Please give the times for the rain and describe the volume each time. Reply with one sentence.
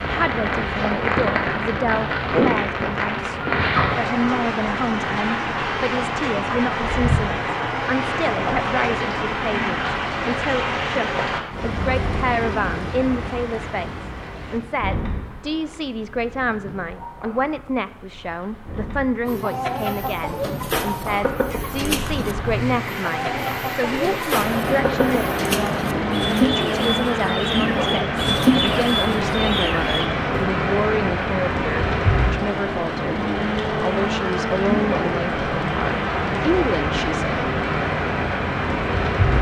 The rain can be heard from 0.0 to 39.3 s, getting quieter then louder.